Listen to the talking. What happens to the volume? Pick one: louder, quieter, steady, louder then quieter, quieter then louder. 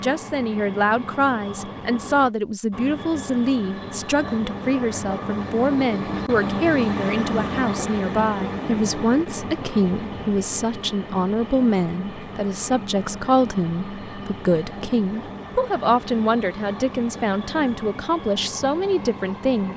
steady.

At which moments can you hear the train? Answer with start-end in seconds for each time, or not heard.
0.0-19.7.